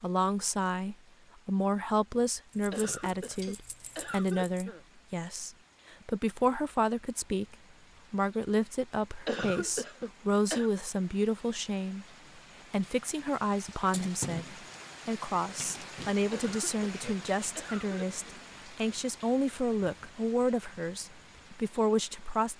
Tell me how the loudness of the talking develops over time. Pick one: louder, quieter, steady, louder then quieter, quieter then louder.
steady.